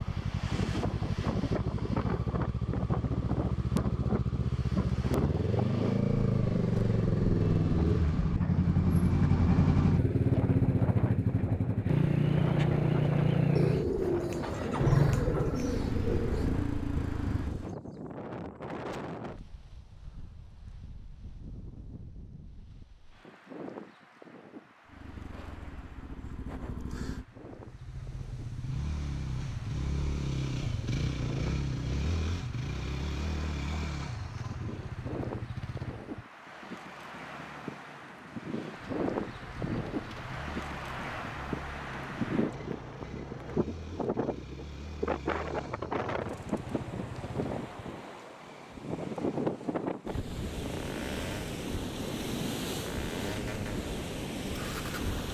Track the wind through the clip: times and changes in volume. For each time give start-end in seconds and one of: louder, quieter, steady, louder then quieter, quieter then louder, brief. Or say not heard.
0.0-55.3 quieter then louder.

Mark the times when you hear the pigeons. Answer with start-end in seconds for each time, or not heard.
13.6-16.5, 38.8-40.4.